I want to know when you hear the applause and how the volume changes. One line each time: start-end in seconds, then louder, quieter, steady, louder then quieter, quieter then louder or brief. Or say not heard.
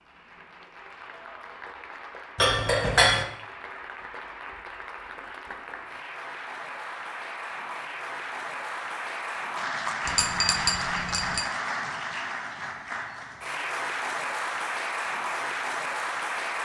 0.0-16.6 louder.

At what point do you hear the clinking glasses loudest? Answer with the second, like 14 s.
3 s.